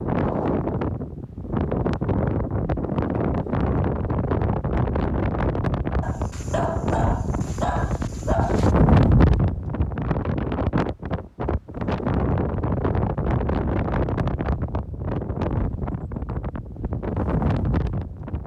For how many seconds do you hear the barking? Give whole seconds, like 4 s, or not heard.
3 s.